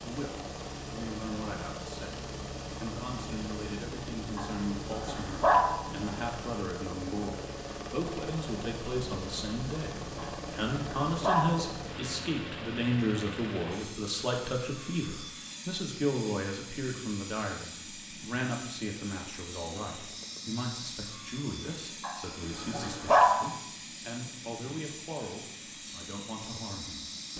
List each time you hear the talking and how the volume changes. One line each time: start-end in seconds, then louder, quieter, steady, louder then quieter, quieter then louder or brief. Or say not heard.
0.0-27.1 louder then quieter.